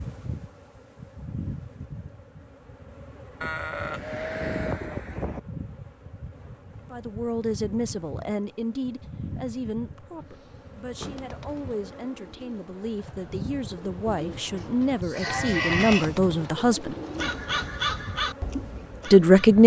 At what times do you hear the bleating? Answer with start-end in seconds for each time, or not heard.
3.4-5.4, 14.6-16.1.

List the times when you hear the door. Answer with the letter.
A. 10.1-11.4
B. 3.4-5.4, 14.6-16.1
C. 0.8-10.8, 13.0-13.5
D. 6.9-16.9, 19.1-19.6
A.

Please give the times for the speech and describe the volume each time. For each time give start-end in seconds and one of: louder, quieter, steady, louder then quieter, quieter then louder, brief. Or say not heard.
6.9-16.9 quieter then louder
19.1-19.6 brief.